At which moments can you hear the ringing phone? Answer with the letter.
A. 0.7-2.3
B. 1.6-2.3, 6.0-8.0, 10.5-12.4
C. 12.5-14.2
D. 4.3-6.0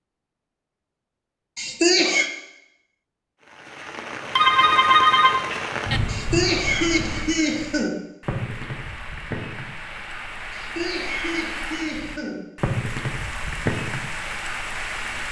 D.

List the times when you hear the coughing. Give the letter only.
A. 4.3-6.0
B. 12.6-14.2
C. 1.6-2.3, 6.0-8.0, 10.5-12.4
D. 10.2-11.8
C.